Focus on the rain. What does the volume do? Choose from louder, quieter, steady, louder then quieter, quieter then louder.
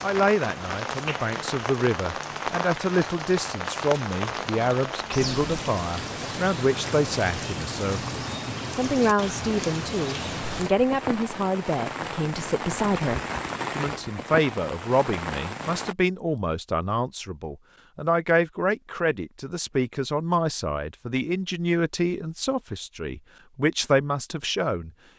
steady.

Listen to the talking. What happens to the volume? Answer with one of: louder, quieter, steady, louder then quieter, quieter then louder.
steady.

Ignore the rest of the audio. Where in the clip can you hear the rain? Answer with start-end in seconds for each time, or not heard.
0.0-15.9.